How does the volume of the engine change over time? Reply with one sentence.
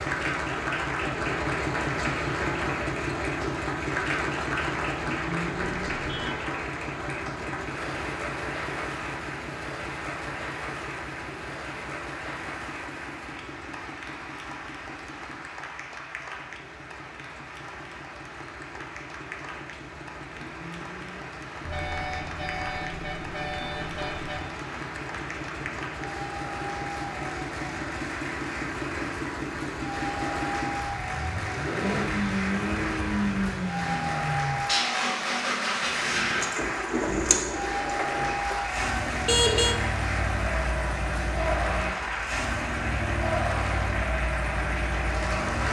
The volume of the engine goes down, then up.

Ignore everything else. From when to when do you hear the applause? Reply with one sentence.
You can hear the applause from 0.0 to 45.6 s.